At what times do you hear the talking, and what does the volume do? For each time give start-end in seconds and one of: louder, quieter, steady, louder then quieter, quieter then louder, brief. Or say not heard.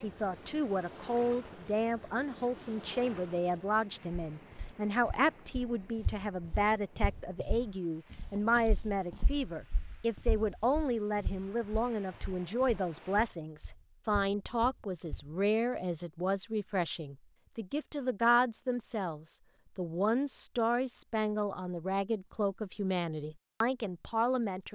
0.0-24.6 steady.